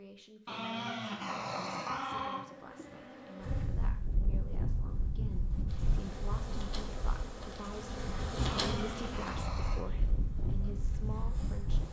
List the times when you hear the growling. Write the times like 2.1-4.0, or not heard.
0.5-2.5, 8.5-9.8.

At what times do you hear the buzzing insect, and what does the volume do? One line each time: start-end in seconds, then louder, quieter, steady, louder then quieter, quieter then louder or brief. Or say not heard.
1.8-3.6 brief
5.7-11.8 louder then quieter.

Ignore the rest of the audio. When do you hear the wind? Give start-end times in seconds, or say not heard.
3.4-11.8.